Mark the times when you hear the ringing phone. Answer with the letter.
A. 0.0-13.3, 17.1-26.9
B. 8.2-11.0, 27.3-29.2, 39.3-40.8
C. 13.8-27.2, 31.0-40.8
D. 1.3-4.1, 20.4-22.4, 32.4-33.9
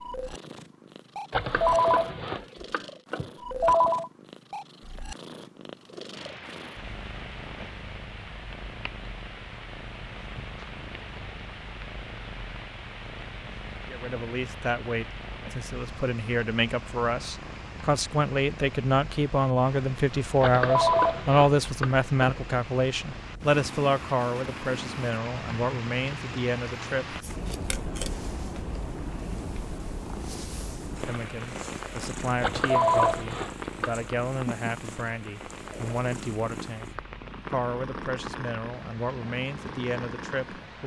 D.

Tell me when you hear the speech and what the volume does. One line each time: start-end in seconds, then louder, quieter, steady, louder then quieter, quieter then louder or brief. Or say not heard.
13.8-27.2 louder then quieter
31.0-40.8 steady.